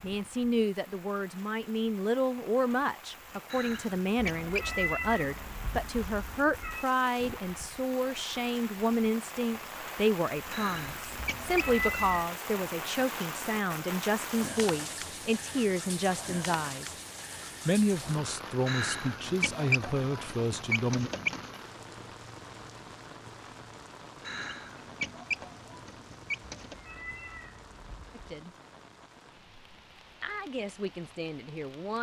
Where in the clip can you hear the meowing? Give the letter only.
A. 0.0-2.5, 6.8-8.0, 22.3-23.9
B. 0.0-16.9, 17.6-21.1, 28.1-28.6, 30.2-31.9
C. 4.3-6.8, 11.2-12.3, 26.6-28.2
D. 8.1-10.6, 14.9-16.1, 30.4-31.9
C.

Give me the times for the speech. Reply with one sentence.
The speech can be heard from 0.0 to 16.9 s, from 17.6 to 21.1 s, from 28.1 to 28.6 s and from 30.2 to 31.9 s.